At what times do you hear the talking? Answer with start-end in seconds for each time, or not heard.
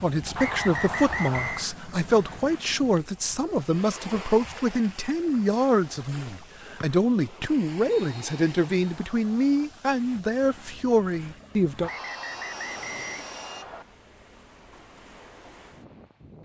0.0-11.9.